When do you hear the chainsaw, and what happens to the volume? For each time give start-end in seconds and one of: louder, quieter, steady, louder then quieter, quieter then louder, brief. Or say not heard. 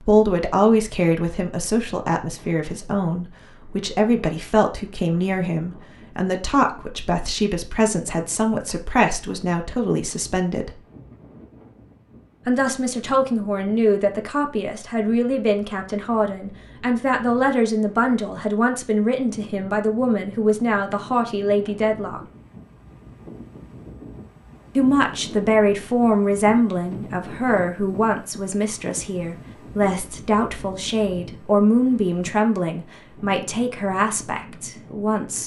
not heard.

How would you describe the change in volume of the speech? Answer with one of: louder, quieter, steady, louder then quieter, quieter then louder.
steady.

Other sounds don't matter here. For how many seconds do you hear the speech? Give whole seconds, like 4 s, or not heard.
31 s.